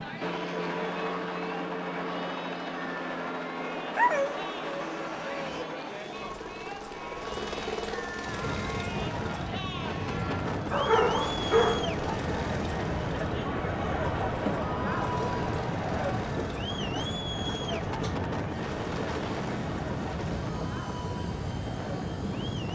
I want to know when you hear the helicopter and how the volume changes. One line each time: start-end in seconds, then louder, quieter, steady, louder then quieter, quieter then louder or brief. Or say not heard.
0.0-22.6 quieter.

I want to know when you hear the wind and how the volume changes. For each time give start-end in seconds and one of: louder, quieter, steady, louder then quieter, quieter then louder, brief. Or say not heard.
8.2-22.6 steady.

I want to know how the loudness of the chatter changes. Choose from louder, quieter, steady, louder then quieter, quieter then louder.
louder then quieter.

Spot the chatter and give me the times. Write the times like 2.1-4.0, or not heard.
0.0-22.6.